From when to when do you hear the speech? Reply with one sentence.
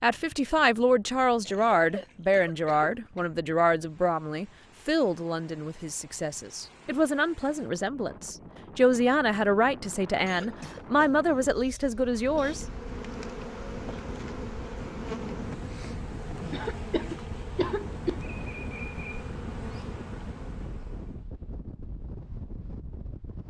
You can hear the speech from 0.0 to 12.7 s.